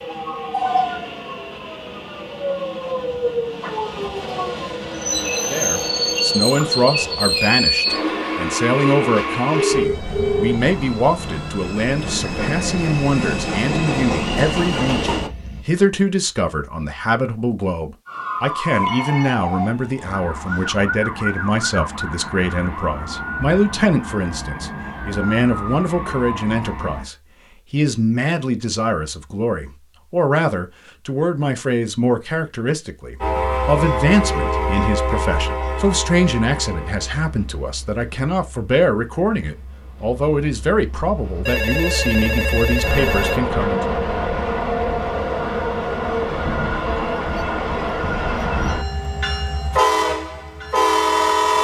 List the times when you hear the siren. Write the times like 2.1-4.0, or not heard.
18.1-27.1.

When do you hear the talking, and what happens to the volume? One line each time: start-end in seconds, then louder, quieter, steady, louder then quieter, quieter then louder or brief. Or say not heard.
5.5-43.9 steady.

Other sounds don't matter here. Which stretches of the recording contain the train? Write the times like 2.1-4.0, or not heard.
0.0-15.7, 33.2-51.5.